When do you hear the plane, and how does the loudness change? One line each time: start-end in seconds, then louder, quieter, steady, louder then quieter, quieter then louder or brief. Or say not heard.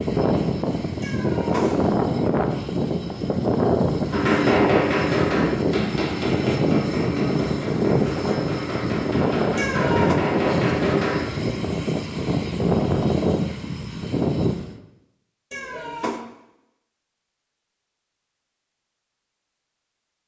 0.0-14.8 steady.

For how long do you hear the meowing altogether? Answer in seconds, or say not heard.
2 s.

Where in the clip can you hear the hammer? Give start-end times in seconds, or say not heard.
4.1-11.2.